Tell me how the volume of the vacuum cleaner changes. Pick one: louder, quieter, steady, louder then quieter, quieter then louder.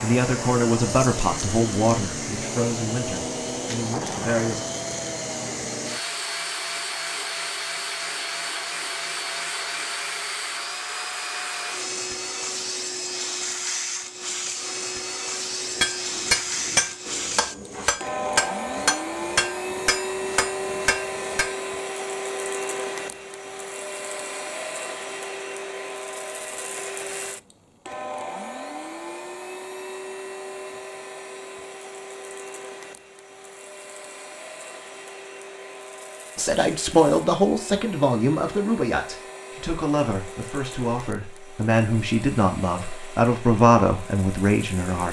quieter.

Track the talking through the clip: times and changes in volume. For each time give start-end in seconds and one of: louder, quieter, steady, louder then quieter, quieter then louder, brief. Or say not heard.
0.0-4.6 quieter
36.4-45.0 quieter then louder.